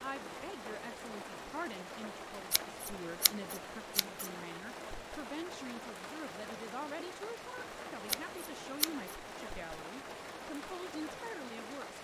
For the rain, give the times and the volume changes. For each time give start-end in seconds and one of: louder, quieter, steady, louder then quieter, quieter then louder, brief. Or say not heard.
0.0-11.9 steady.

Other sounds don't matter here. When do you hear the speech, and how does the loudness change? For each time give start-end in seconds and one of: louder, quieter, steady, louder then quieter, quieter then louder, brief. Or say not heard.
0.0-11.9 steady.